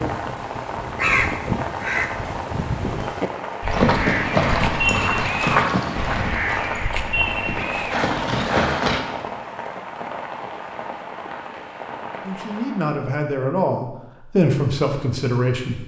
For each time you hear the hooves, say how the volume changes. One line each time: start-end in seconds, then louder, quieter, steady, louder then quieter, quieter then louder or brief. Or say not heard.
3.6-9.0 quieter then louder.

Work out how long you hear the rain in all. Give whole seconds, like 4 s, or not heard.
13 s.